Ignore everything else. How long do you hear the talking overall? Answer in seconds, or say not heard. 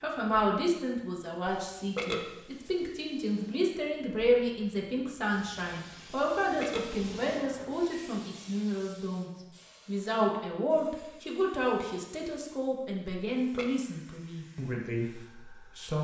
16 s.